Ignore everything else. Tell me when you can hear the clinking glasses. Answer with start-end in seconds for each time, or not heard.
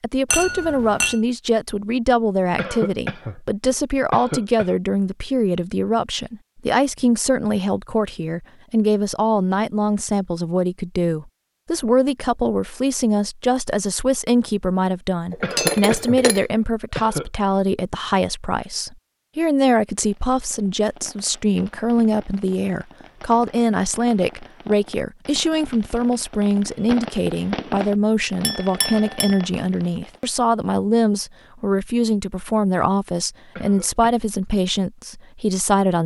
0.3-1.2, 15.3-16.4, 28.4-29.4.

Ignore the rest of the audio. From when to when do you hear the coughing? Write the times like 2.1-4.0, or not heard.
2.5-4.8, 15.4-17.3, 33.5-34.1.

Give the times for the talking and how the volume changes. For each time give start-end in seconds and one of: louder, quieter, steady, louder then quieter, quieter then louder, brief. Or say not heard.
0.0-36.0 steady.